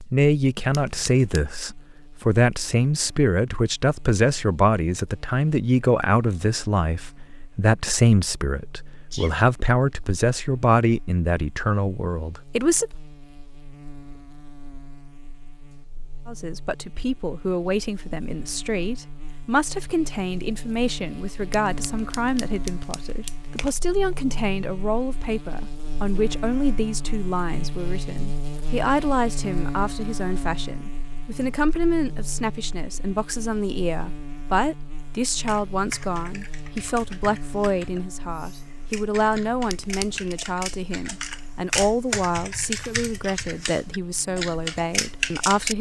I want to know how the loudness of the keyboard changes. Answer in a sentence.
The volume of the keyboard goes up.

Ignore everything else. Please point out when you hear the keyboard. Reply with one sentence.
You can hear the keyboard from 35.2 to 45.7 s.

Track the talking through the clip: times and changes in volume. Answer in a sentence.
The talking can be heard from 0.1 to 12.9 s, at a steady volume; and from 16.2 to 45.7 s, at a steady volume.